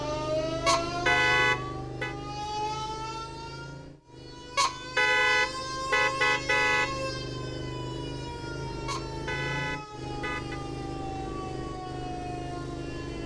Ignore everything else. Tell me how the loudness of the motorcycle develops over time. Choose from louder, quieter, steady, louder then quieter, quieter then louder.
quieter then louder.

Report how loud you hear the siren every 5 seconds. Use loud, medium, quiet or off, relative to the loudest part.
loud, loud, medium.